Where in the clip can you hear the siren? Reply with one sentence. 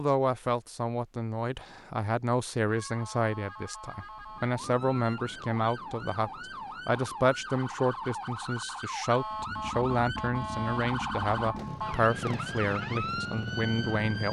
The siren can be heard from 2.6 to 14.2 s.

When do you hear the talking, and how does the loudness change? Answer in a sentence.
The talking can be heard from 0.0 to 14.2 s, at a steady volume.